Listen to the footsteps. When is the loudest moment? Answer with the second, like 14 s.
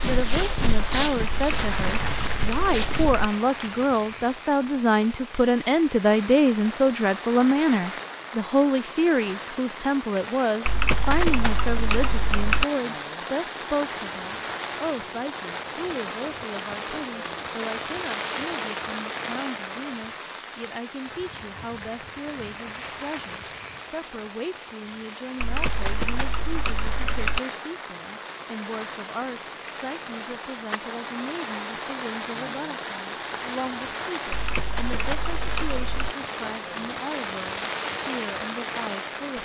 1 s.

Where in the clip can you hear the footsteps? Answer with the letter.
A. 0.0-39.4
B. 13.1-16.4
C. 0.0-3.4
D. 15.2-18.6
C.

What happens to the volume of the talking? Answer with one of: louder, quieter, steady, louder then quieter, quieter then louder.
quieter.